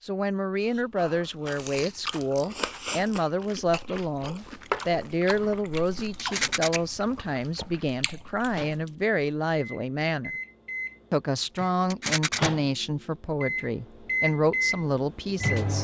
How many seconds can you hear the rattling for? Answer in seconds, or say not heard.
3 s.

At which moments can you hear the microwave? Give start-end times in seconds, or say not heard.
8.5-15.7.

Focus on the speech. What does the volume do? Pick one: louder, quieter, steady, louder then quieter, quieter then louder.
steady.